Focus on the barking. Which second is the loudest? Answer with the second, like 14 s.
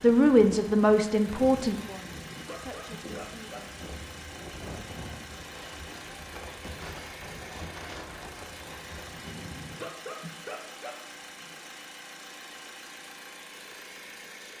10 s.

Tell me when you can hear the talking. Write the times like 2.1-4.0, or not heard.
0.0-3.6.